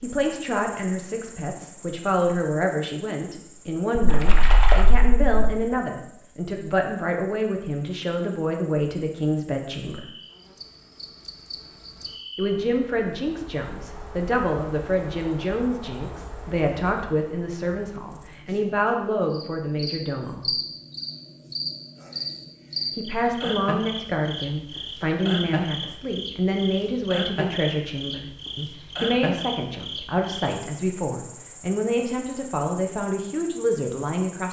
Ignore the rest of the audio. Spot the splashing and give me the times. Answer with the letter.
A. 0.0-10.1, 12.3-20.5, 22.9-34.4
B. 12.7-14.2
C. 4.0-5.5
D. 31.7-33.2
C.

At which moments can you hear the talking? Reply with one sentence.
You can hear the talking from 0.0 to 10.1 s, from 12.3 to 20.5 s and from 22.9 to 34.4 s.